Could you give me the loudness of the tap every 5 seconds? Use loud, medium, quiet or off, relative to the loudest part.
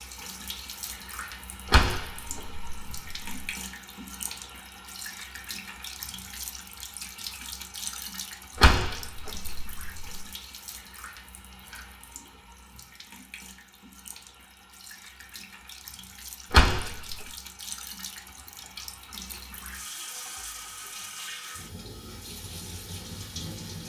loud, loud, medium, loud, loud.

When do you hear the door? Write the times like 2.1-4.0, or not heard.
1.6-3.5, 8.6-10.2, 16.5-17.2.